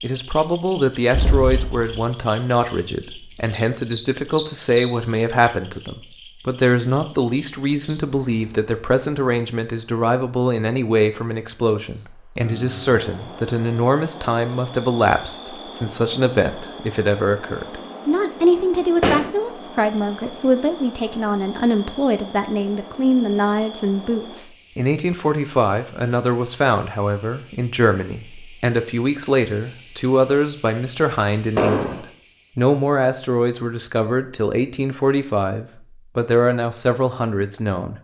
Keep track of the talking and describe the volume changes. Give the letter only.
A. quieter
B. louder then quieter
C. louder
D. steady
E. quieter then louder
D.